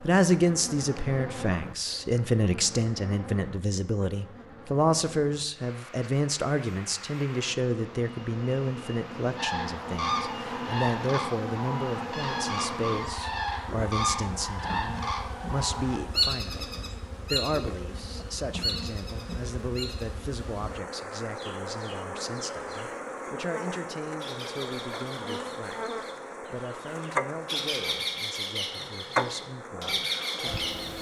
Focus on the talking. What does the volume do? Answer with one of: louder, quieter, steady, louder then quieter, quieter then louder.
quieter.